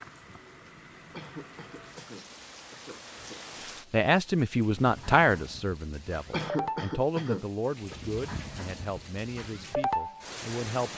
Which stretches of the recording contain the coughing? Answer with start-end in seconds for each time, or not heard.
1.1-3.5, 6.3-8.0.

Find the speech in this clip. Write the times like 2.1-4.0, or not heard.
3.9-10.9.